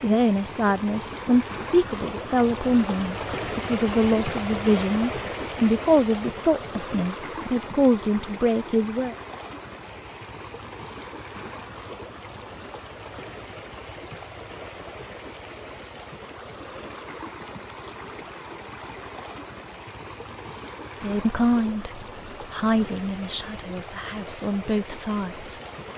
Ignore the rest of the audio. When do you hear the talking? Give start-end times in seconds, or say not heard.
0.0-9.2, 20.9-25.6.